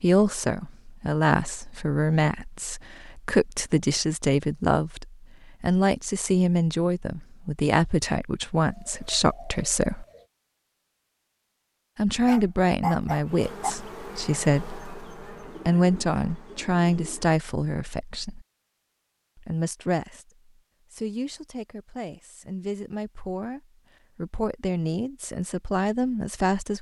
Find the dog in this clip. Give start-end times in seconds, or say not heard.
12.2-13.7.